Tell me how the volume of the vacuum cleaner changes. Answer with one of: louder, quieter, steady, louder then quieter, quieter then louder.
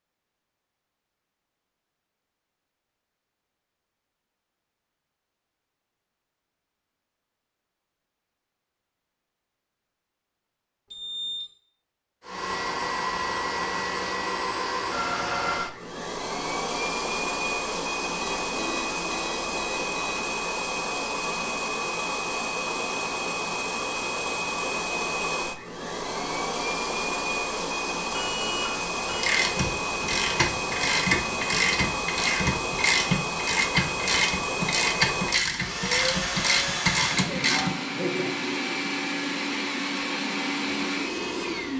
steady.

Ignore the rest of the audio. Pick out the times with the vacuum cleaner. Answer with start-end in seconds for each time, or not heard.
12.2-41.7.